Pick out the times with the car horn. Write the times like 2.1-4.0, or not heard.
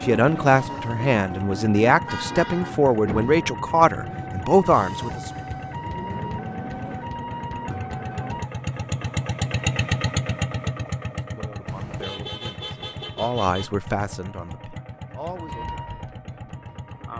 2.0-2.8, 11.7-13.7.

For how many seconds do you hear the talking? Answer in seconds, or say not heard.
10 s.